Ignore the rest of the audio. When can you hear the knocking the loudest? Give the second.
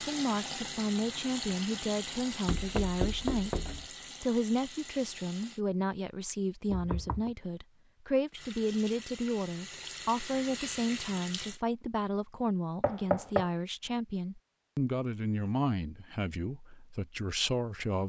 13 s.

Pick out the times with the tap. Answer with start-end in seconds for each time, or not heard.
0.0-5.6, 8.3-11.6.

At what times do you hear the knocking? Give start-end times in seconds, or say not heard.
2.5-3.9, 6.7-7.3, 12.8-13.5.